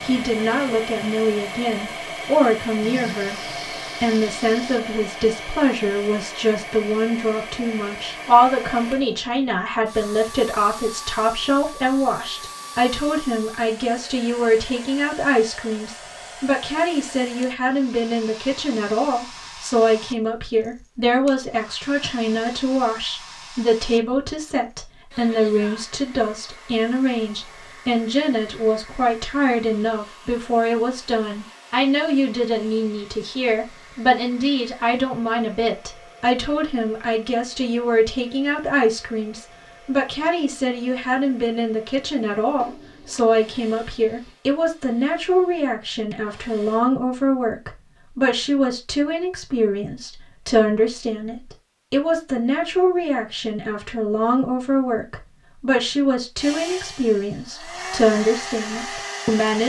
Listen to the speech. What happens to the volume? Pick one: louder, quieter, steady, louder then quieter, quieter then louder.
steady.